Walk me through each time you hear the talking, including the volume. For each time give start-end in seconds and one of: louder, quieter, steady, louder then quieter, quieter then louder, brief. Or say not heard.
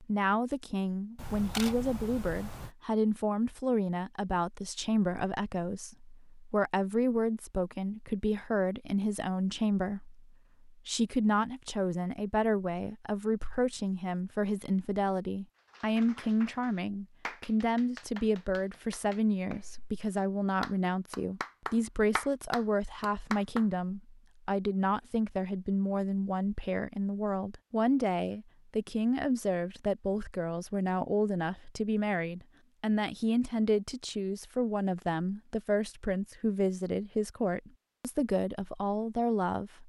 0.0-39.8 steady.